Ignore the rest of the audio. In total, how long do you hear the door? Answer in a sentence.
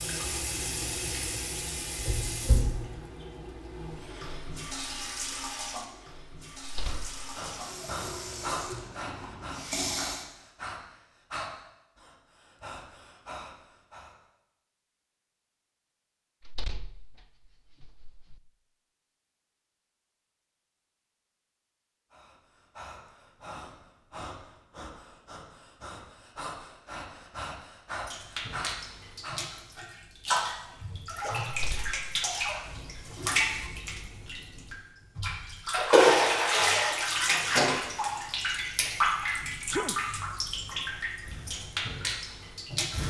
The door can be heard for 3 seconds in total.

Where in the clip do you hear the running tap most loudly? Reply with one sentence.
The loudest moment of the running tap is at 36 seconds.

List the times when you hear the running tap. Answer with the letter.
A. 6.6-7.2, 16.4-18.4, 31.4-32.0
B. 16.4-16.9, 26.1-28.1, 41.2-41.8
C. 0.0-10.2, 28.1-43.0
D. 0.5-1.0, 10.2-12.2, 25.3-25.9
C.